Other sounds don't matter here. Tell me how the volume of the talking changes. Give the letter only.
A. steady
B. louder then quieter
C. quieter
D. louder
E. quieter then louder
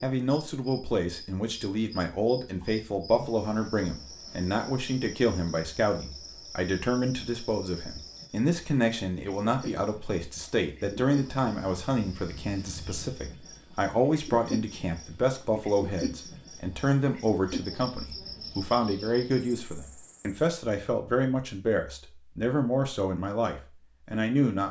A.